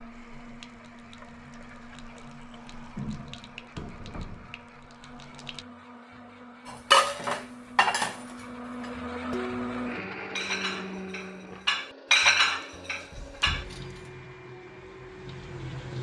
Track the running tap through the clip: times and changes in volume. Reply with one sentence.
You can hear the running tap from 0.0 to 5.7 s, getting louder then quieter; and briefly from 13.4 to 15.9 s.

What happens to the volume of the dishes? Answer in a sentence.
The loudness of the dishes goes down, then up.